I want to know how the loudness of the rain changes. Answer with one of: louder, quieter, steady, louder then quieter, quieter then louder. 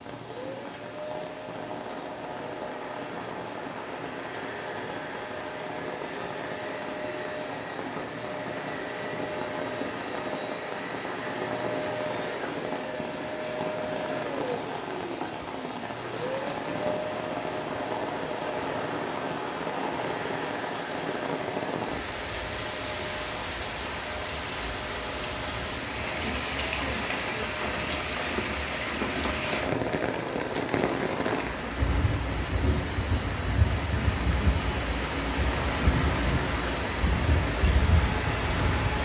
louder.